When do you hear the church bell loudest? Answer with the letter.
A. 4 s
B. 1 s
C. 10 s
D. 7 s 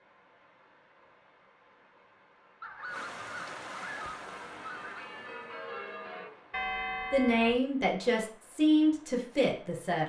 D.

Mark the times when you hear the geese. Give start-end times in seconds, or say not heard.
2.6-5.1.